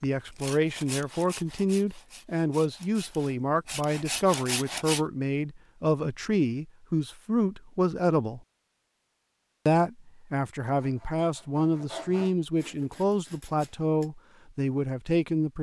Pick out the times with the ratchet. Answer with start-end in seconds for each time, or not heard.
not heard.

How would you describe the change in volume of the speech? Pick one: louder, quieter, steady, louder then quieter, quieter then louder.
steady.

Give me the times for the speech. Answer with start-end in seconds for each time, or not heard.
0.0-8.4, 9.7-15.5.